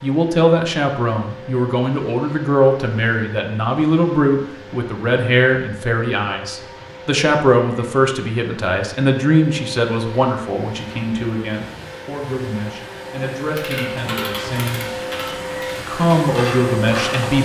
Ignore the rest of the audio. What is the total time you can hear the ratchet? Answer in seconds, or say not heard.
4 s.